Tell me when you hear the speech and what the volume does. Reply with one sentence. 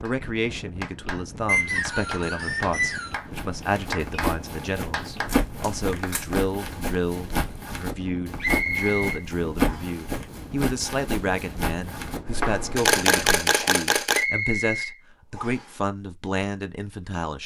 You can hear the speech from 0.0 to 17.4 s, at a steady volume.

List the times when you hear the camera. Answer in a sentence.
You can hear the camera from 5.2 to 6.3 s and from 12.8 to 14.2 s.